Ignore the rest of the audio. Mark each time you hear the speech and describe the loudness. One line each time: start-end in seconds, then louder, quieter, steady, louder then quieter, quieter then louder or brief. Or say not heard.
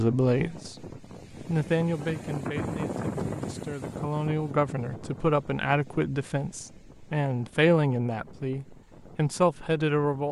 0.0-10.2 quieter then louder.